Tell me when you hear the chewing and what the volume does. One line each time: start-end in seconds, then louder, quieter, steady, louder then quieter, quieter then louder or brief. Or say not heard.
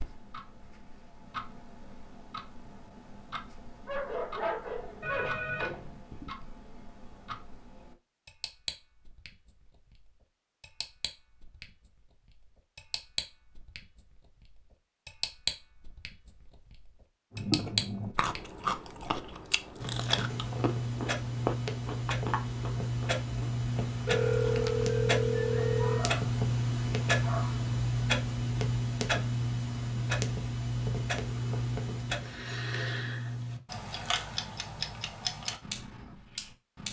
17.4-24.9 quieter.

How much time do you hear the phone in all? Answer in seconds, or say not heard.
3 s.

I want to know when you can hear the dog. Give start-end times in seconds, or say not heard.
3.9-5.3, 25.6-26.3, 27.2-27.7.